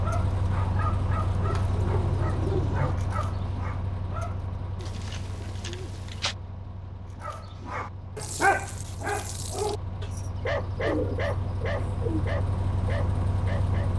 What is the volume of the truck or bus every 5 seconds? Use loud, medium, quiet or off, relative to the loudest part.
loud, medium, loud.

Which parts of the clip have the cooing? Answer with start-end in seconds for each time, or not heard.
1.4-3.0, 4.8-6.3, 10.0-12.2.